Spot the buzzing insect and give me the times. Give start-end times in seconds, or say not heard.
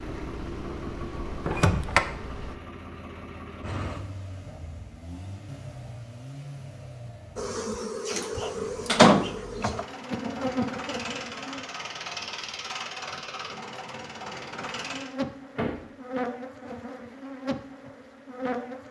0.0-2.5, 7.3-11.7, 14.6-18.8.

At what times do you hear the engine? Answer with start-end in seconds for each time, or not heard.
0.0-15.2.